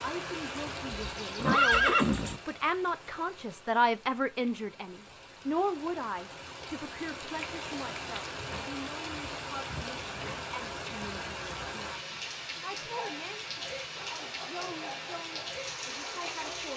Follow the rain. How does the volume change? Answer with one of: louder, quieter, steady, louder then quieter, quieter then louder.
quieter then louder.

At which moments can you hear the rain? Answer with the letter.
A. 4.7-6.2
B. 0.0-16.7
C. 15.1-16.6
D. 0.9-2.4
B.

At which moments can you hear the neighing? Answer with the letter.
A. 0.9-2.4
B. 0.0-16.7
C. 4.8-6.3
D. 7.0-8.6
A.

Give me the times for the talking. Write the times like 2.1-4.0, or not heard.
0.0-16.7.